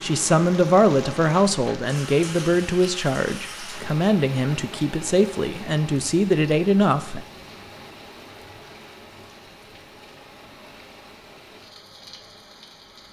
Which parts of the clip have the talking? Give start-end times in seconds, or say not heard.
0.0-7.2.